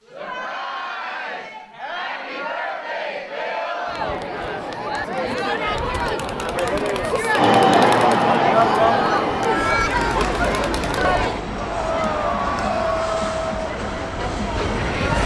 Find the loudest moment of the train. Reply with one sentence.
The loudest moment of the train is at 8 seconds.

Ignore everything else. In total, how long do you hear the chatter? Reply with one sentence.
The chatter can be heard for 15 seconds in total.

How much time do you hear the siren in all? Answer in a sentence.
You can't hear the siren here.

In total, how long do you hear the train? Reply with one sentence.
The train can be heard for 8 seconds in total.